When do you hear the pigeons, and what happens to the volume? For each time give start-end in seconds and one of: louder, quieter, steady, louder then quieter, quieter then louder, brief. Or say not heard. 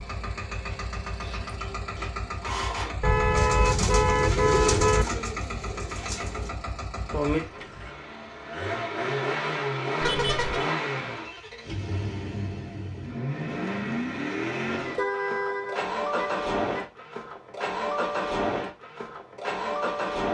1.2-6.5 louder then quieter.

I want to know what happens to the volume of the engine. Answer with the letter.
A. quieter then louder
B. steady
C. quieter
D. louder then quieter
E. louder
E.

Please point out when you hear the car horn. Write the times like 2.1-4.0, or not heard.
3.0-5.0, 10.0-10.7, 14.8-16.9.